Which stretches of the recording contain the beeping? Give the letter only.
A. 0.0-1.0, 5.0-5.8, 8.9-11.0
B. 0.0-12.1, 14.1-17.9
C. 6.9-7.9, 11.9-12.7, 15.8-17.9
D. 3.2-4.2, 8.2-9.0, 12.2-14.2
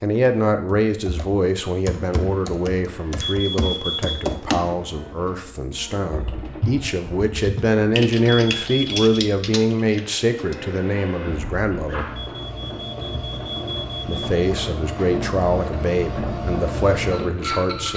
D.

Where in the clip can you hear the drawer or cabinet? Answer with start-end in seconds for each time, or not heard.
not heard.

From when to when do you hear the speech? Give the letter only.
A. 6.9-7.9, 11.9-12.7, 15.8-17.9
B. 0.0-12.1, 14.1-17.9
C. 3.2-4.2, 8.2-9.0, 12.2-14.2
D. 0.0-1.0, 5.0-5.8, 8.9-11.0
B.